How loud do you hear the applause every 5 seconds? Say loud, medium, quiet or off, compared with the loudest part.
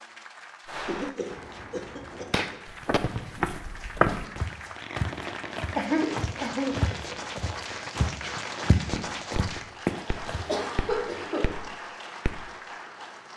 medium, loud, loud.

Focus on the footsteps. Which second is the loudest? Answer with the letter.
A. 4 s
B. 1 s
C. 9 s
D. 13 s
A.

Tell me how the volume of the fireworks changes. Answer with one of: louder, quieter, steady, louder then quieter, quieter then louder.
quieter.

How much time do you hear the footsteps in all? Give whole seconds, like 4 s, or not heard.
8 s.